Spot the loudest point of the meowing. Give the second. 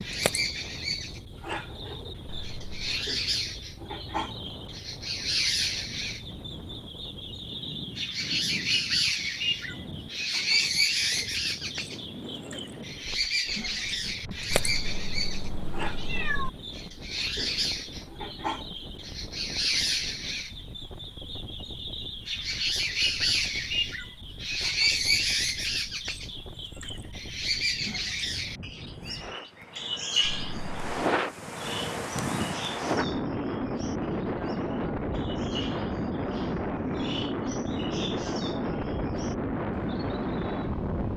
16 s.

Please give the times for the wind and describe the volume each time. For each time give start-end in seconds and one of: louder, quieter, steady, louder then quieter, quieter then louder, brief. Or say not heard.
0.0-41.1 louder.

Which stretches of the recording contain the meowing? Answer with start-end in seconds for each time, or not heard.
2.2-3.0, 14.5-16.5, 30.2-30.9.